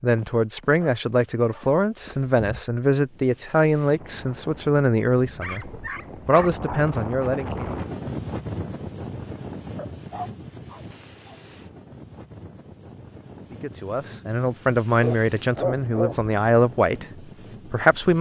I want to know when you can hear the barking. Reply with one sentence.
You can hear the barking from 0.1 to 2.6 s, from 5.2 to 6.8 s, from 9.8 to 11.4 s and from 15.0 to 16.4 s.